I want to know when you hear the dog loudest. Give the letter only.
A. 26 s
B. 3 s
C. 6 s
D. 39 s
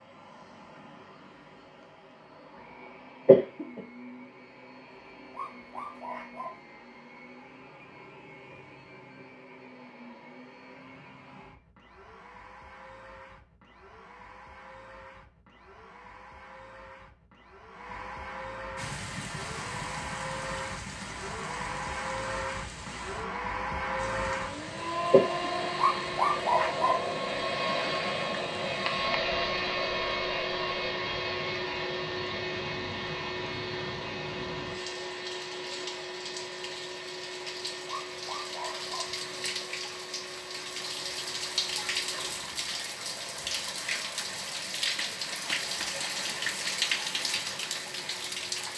A.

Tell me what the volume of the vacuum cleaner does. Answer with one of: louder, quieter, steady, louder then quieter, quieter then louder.
louder then quieter.